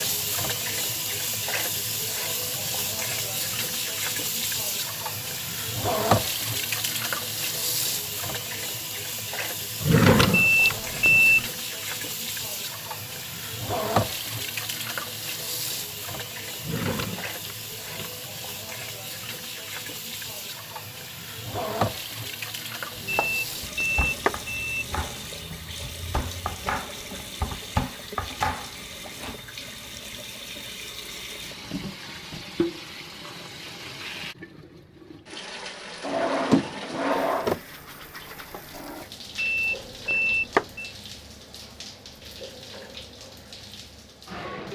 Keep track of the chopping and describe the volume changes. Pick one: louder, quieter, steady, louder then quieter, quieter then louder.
louder.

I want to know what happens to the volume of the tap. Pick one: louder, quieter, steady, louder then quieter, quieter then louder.
quieter.